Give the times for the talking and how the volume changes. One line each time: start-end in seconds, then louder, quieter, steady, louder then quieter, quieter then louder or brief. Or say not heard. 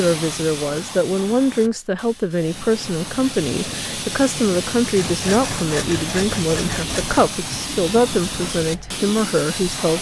0.0-9.9 steady.